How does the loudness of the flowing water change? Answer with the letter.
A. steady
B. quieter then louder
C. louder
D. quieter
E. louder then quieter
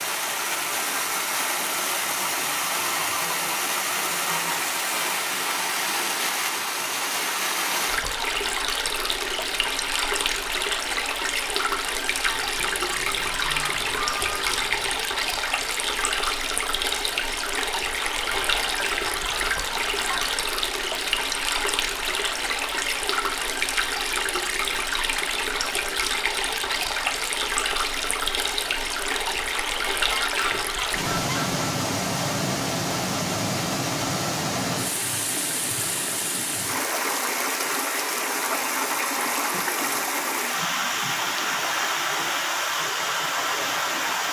A.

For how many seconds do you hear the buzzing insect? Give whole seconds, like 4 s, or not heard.
not heard.